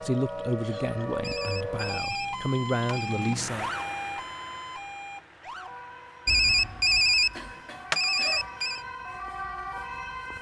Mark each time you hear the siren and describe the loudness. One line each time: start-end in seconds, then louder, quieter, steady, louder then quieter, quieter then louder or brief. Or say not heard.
0.0-10.3 quieter then louder.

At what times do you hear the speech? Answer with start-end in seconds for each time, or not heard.
0.0-3.7.